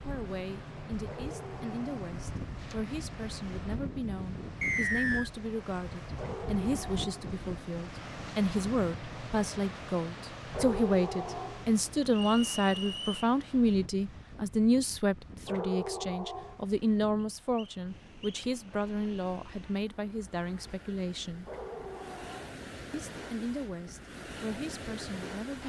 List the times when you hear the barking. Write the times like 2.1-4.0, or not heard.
0.9-2.0, 6.1-7.3, 10.4-11.7, 15.4-16.6, 21.4-22.6.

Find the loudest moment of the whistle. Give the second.
5 s.